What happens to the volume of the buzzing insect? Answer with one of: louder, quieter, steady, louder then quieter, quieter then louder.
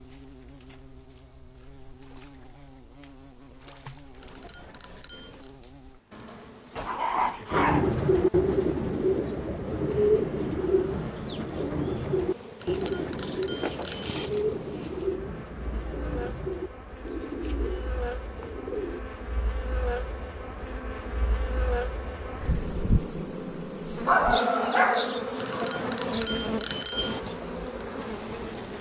louder.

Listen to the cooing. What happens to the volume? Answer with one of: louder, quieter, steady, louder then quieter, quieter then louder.
quieter.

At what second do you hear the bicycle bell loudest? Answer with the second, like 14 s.
27 s.